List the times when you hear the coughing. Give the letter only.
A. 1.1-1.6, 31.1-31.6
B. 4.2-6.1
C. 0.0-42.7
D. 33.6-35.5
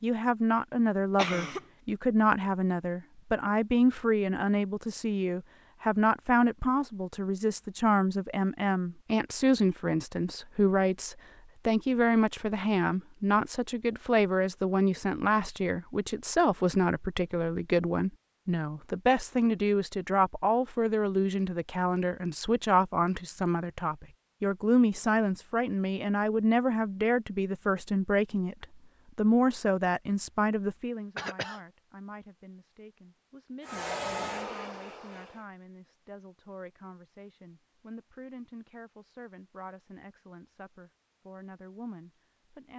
A.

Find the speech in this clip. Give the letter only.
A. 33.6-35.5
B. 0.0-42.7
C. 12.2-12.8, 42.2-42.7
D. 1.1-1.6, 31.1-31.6
B.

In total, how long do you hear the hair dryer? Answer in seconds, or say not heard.
2 s.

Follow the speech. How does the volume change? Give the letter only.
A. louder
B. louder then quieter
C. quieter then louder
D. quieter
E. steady
D.